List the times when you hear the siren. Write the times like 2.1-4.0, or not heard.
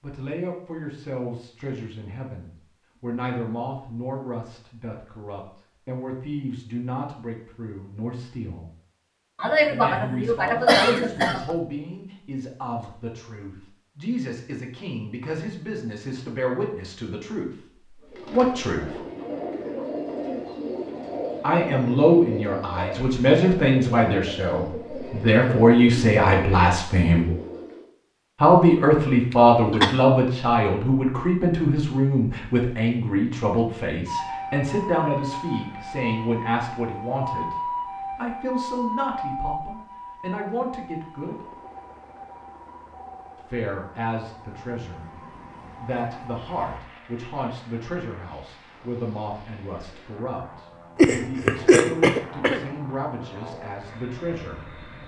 34.0-46.8.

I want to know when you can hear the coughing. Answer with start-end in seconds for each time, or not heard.
9.4-11.6, 29.3-30.0, 51.0-52.7.